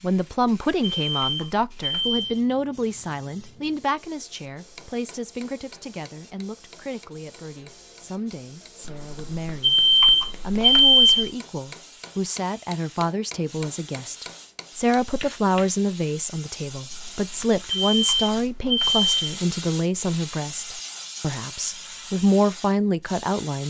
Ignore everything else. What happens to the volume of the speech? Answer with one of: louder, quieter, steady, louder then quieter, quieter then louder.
quieter then louder.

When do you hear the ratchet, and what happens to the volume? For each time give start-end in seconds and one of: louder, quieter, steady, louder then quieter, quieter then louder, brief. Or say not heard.
not heard.